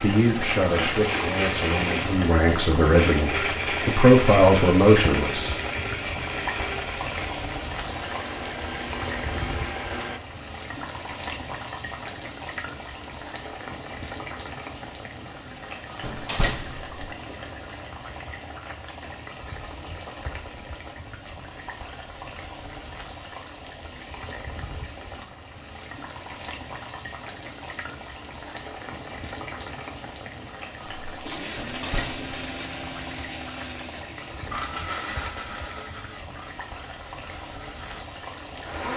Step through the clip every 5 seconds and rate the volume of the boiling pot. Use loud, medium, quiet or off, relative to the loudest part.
loud, loud, medium, medium, medium, medium, medium, medium.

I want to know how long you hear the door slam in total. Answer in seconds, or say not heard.
2 s.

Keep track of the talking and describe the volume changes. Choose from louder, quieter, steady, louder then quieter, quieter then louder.
louder.